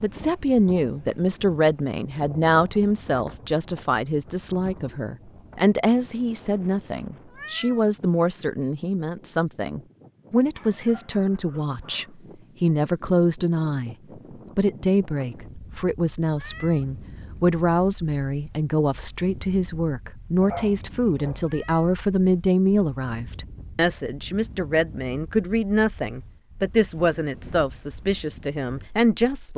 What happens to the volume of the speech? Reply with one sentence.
The volume of the speech stays about the same.